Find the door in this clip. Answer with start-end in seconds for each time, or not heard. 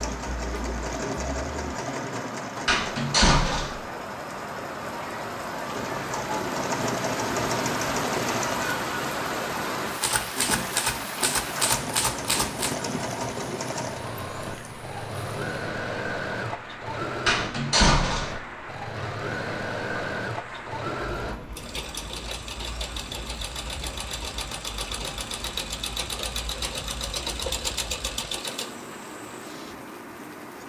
2.6-3.8, 17.2-18.4.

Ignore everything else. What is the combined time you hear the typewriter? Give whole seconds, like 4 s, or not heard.
3 s.